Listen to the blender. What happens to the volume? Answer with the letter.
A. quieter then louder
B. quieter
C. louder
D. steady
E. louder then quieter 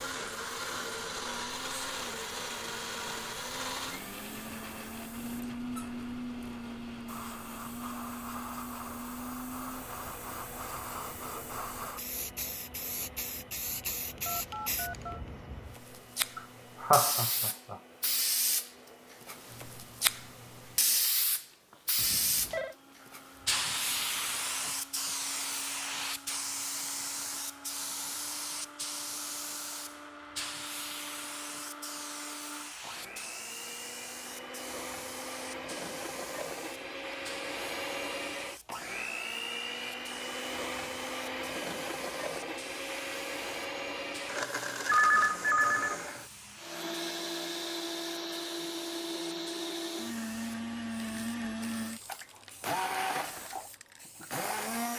A.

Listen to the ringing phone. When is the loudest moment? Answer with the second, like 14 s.
45 s.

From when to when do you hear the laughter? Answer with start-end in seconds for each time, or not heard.
16.4-17.8.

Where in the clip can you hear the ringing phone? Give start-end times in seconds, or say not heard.
14.2-15.2, 21.9-22.8, 44.9-46.0.